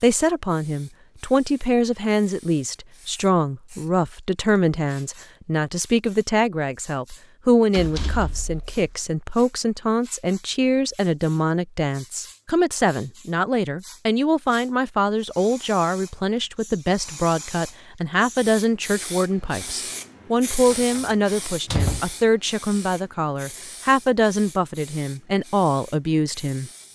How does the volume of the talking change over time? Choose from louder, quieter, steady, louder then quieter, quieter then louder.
steady.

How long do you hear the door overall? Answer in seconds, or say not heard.
3 s.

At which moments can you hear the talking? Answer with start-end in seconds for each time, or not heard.
0.0-26.9.